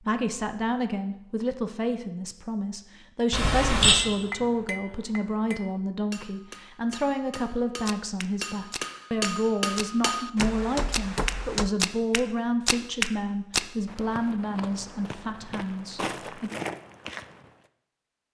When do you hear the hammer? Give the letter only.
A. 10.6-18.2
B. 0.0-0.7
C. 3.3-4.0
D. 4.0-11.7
D.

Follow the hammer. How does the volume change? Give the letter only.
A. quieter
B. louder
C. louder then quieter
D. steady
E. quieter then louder
B.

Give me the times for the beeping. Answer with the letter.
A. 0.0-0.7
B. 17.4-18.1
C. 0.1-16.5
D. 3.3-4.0
D.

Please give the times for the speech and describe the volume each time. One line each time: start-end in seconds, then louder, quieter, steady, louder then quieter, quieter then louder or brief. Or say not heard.
0.1-16.5 steady.